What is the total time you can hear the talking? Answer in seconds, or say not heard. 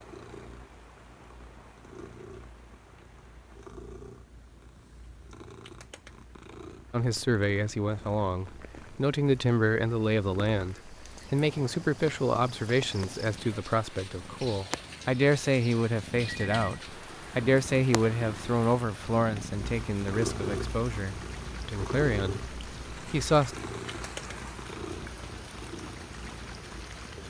17 s.